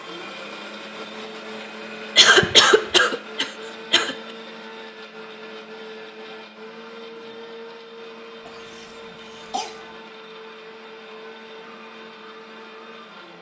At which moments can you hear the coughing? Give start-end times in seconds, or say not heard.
2.1-4.2, 8.4-9.8.